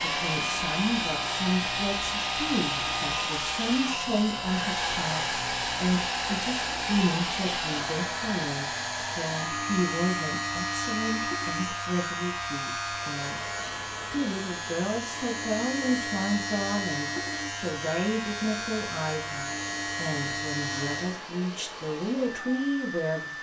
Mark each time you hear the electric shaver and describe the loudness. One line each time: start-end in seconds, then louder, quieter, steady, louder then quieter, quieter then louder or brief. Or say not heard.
0.0-21.2 steady.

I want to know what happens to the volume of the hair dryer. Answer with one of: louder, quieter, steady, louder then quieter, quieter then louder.
quieter.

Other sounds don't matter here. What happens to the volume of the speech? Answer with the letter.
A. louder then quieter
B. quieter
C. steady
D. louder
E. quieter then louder
C.